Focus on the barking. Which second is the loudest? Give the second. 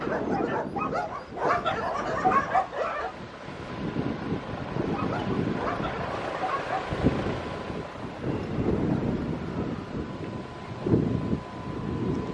2 s.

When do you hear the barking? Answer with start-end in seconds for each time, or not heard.
0.0-3.1, 4.9-6.8.